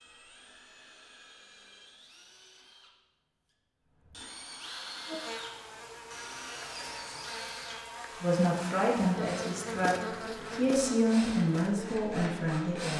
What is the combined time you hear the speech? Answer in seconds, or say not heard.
5 s.